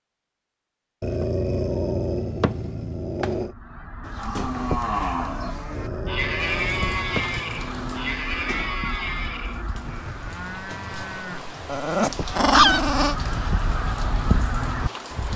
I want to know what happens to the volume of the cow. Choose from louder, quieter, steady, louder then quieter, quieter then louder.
quieter.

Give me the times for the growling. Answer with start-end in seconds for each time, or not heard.
1.0-3.5, 5.7-8.0, 11.7-13.2.